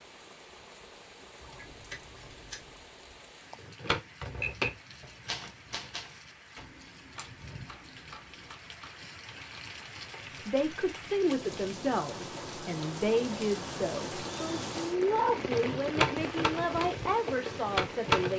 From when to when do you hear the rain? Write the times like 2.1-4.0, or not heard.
0.0-18.3.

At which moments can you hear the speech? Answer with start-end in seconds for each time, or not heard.
10.4-18.3.